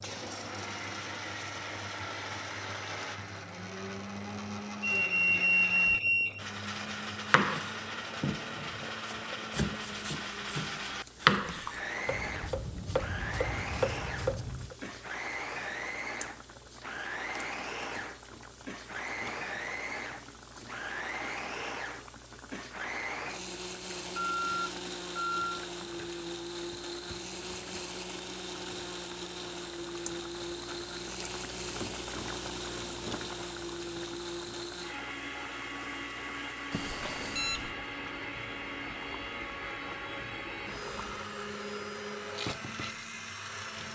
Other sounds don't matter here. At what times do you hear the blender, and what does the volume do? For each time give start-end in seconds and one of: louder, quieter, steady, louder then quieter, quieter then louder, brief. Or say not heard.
0.0-43.9 steady.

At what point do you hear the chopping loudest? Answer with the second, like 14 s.
11 s.